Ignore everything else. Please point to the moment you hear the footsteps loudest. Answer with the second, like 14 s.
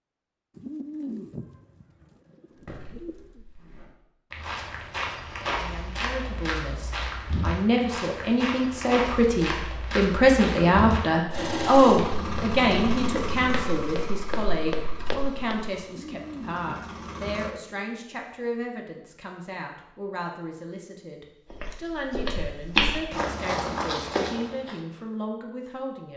23 s.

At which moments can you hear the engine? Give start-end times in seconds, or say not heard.
11.3-17.6.